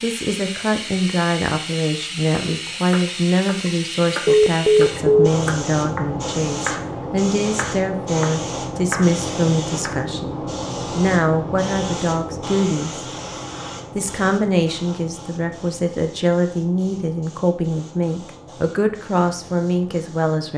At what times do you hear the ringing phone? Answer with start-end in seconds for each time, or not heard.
4.2-5.3.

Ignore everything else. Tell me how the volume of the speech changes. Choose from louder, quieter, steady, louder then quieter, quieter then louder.
steady.